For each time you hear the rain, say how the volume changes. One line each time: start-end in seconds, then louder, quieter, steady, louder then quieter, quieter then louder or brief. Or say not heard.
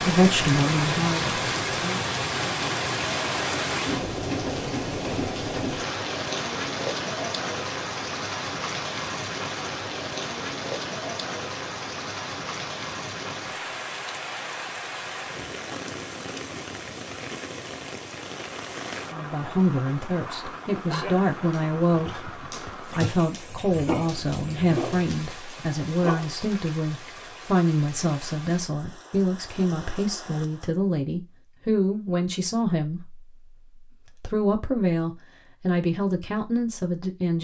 0.0-30.8 quieter.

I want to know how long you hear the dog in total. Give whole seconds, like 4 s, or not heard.
6 s.